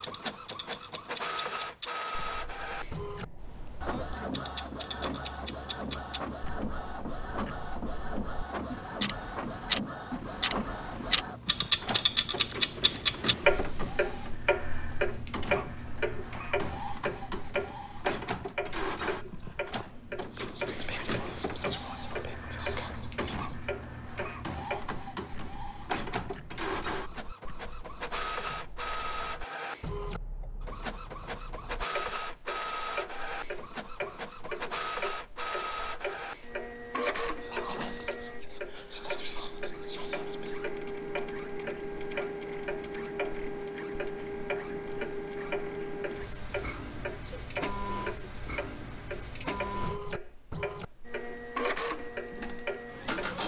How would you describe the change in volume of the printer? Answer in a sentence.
The loudness of the printer stays about the same.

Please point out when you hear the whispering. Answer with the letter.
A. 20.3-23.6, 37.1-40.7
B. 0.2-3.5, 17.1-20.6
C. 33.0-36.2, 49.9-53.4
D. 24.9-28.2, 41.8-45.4
A.